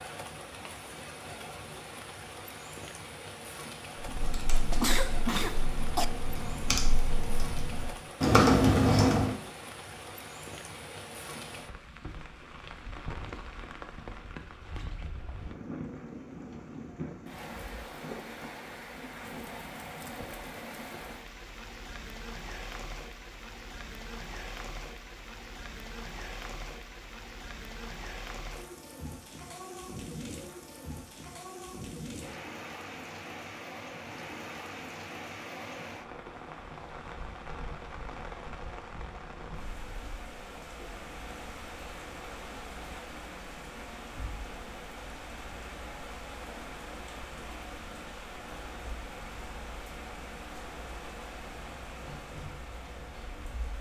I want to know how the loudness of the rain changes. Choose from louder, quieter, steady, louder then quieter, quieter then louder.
steady.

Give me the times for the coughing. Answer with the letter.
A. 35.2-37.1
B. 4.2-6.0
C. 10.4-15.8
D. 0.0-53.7
B.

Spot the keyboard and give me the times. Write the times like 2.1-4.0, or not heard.
4.0-9.3.